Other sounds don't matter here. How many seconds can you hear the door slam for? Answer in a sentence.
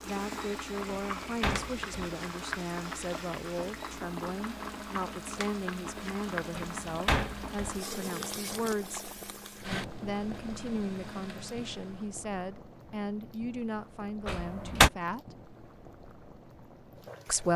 You can hear the door slam for 3 seconds altogether.